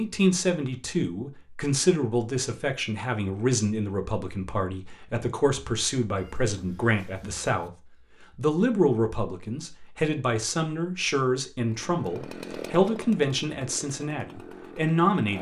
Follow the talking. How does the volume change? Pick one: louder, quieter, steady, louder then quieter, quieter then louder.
steady.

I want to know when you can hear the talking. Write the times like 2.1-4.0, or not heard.
0.0-7.7, 8.3-15.3.